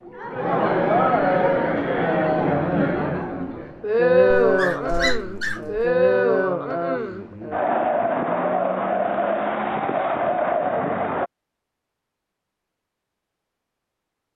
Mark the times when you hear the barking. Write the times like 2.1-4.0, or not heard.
4.3-5.9.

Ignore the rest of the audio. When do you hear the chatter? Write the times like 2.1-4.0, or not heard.
0.1-11.3.